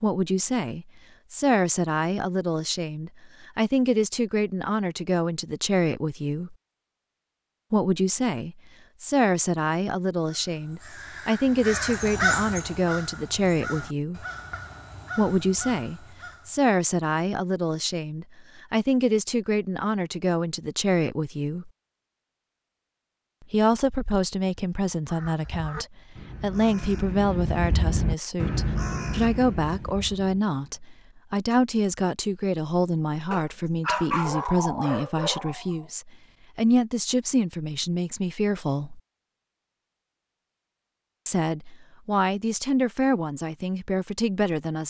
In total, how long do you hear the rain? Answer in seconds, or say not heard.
not heard.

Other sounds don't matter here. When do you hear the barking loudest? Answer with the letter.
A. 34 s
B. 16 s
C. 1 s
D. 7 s
A.